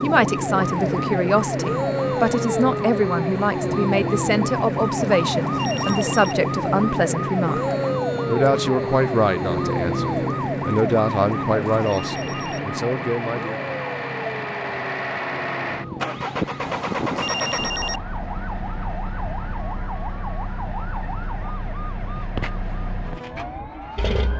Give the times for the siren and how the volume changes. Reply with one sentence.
The siren can be heard from 0.0 to 24.3 s, getting quieter.